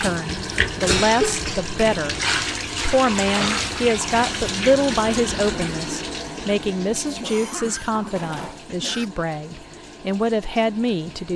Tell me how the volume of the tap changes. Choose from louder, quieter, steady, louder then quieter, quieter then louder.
quieter.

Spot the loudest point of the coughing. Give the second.
1 s.